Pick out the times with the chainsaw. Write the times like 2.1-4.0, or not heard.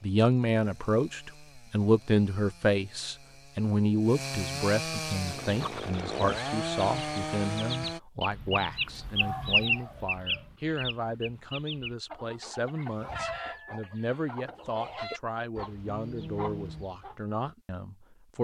0.0-8.0.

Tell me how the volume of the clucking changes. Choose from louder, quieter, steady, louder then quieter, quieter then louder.
louder then quieter.